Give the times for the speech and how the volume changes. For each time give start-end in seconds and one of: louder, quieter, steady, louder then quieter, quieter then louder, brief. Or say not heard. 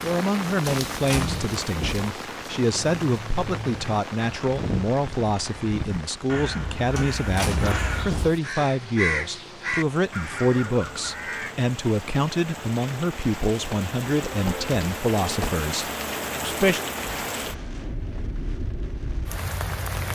0.0-16.8 steady.